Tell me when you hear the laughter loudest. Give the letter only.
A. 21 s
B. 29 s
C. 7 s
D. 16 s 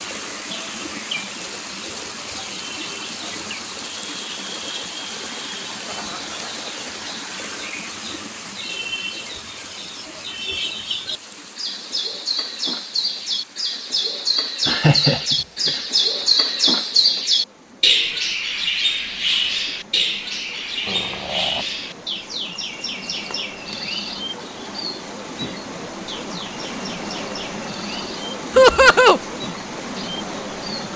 B.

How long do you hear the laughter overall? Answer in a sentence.
The laughter can be heard for 3 seconds in total.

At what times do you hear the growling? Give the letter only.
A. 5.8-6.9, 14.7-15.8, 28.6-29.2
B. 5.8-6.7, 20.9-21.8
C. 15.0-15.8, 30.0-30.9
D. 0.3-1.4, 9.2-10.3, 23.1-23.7
B.